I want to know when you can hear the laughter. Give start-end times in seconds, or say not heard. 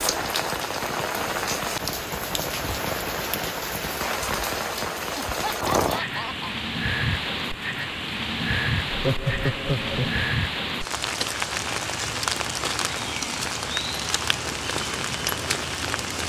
5.2-6.5, 8.8-10.2.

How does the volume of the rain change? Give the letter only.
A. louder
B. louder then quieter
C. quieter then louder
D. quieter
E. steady
E.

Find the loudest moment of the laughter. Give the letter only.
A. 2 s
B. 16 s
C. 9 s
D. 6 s
C.